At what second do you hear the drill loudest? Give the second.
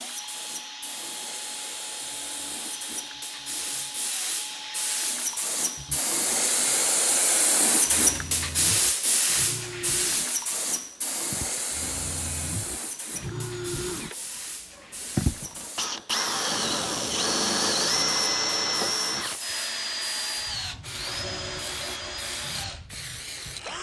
18 s.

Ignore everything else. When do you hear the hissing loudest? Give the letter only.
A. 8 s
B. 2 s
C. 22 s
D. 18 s
A.